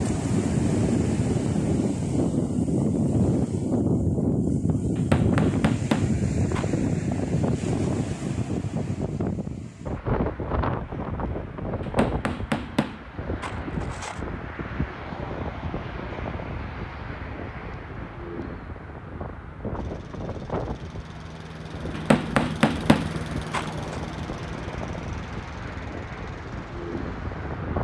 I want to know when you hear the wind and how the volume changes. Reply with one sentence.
The wind can be heard from 0.0 to 27.7 s, getting quieter.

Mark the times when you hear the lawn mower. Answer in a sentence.
You can hear the lawn mower from 19.8 to 27.7 s.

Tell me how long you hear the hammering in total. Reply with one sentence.
You can hear the hammering for 6 seconds altogether.